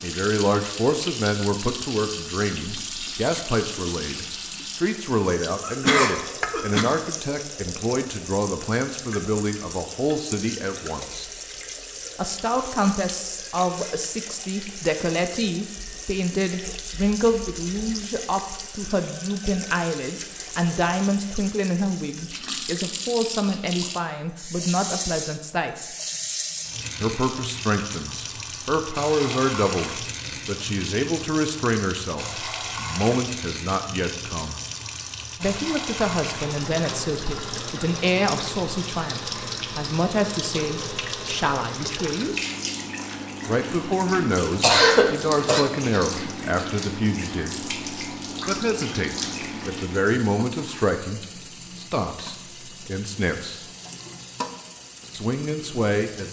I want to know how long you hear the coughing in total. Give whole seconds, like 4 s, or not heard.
2 s.